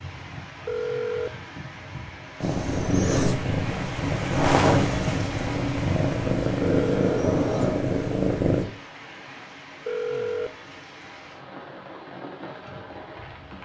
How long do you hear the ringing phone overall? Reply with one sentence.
You can hear the ringing phone for 2 seconds altogether.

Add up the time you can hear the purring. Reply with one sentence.
The purring can be heard for 6 seconds in total.